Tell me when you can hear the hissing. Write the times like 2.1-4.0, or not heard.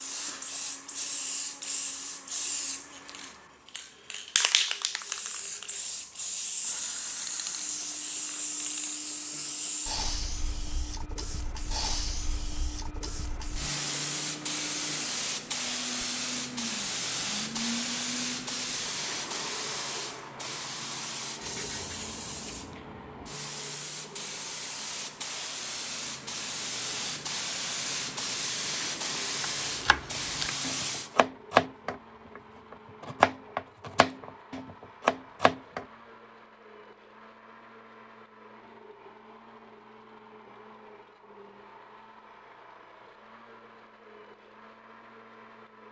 0.0-31.1.